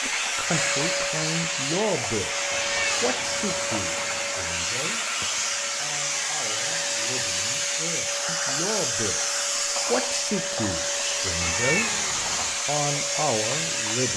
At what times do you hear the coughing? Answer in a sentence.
The coughing can't be heard in this clip.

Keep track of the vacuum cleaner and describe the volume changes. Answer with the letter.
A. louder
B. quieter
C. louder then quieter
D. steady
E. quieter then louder
D.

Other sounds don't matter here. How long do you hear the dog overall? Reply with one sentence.
The dog can't be heard in this clip.